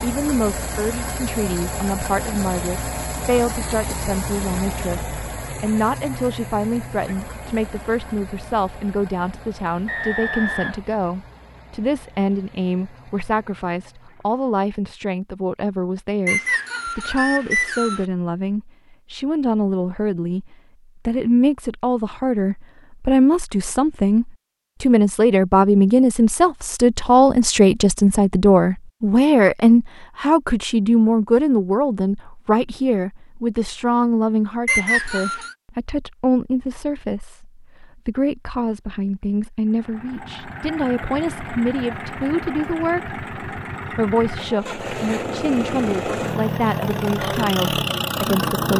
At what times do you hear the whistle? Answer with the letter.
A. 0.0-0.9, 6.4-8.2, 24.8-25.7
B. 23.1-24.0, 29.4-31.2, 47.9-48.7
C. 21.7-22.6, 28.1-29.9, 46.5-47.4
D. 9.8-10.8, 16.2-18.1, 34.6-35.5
D.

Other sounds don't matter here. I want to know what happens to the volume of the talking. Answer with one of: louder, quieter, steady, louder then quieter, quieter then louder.
louder then quieter.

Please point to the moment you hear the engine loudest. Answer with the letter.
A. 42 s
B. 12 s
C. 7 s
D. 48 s
D.